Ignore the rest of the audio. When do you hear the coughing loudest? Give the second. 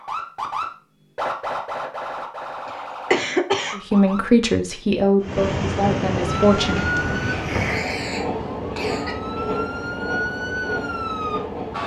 3 s.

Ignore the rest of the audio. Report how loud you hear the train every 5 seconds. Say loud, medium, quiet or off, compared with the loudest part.
off, loud, loud.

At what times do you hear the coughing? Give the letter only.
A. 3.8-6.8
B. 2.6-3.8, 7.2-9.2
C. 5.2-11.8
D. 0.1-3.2
B.